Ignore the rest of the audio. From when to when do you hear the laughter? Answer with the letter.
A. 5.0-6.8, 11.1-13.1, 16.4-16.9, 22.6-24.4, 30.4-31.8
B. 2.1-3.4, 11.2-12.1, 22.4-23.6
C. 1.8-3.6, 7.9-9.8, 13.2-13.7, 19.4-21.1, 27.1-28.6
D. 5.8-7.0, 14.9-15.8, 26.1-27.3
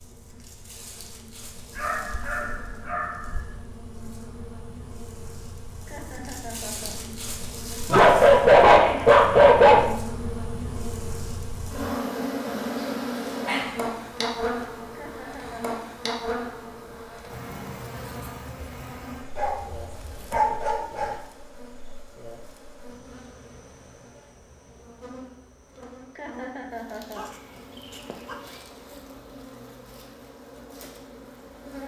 D.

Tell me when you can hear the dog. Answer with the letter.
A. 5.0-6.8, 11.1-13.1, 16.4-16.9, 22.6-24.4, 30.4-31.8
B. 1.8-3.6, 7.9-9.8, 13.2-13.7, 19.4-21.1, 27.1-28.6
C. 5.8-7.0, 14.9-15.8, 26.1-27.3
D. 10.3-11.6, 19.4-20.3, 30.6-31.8
B.